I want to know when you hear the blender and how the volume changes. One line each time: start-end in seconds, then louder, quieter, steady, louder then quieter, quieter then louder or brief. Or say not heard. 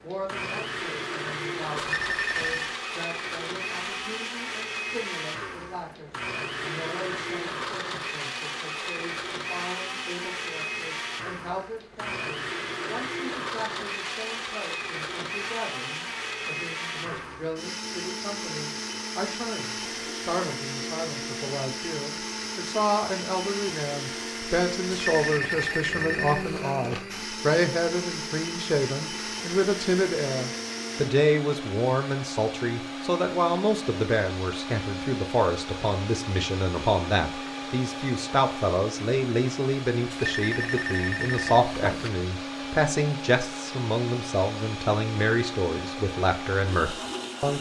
0.0-47.5 steady.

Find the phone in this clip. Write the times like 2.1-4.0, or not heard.
1.8-2.8, 24.9-26.6, 40.1-42.1.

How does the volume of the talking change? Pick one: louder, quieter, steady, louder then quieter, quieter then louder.
louder.